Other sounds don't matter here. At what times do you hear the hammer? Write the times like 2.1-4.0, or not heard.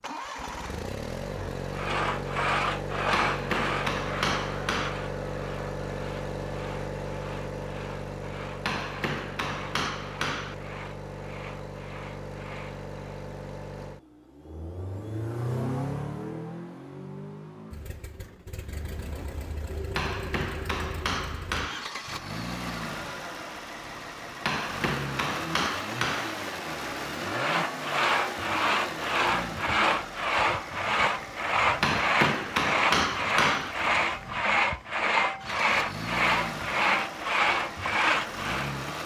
3.1-5.0, 8.6-10.6, 19.9-21.9, 24.4-26.4, 31.8-33.8.